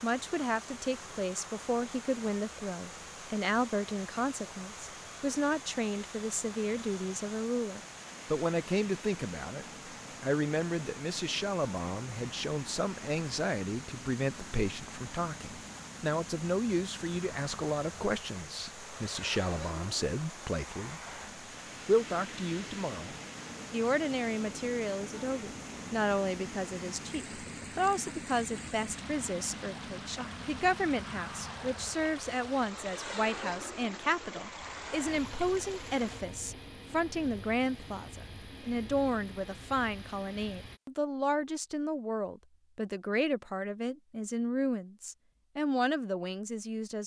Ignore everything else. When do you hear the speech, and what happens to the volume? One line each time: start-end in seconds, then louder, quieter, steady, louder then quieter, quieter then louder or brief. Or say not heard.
0.0-21.0 steady
21.9-47.0 steady.